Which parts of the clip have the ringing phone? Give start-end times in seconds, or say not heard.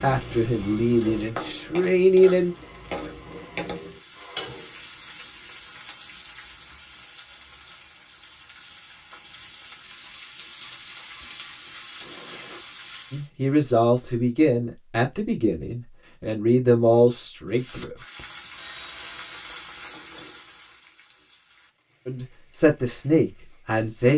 2.5-4.5, 12.0-12.7, 18.6-19.4.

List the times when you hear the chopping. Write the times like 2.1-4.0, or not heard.
not heard.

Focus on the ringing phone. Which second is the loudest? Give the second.
19 s.